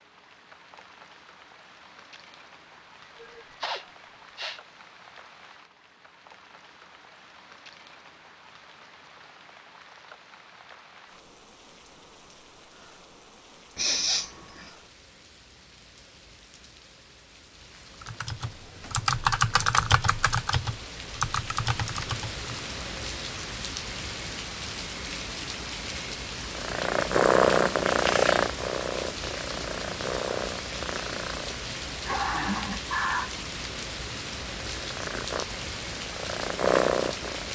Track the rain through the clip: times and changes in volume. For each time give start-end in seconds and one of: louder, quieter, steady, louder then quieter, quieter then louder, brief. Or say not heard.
0.0-37.4 louder.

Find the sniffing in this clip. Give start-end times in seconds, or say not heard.
3.2-4.6, 13.8-14.7, 31.9-33.3.